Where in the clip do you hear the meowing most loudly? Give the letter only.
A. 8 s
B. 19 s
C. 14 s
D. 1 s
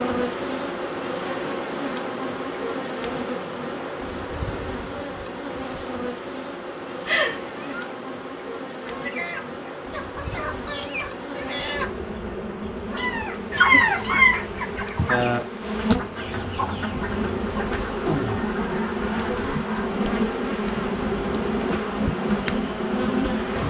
C.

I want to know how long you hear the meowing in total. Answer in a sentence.
The meowing can be heard for 2 seconds in total.